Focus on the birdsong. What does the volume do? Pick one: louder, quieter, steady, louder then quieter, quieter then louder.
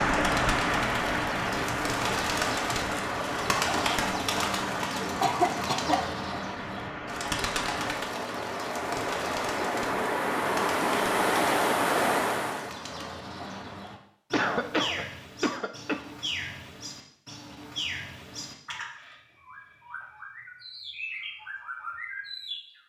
quieter.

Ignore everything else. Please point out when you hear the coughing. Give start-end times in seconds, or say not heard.
5.2-6.0, 14.3-16.0.